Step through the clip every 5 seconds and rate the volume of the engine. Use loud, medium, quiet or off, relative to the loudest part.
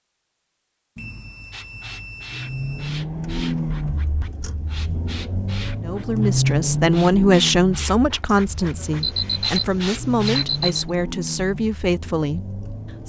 loud, loud, medium.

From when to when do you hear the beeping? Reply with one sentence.
You can hear the beeping from 0.9 to 2.9 s and from 8.4 to 10.9 s.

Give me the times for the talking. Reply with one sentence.
You can hear the talking from 5.8 to 13.0 s.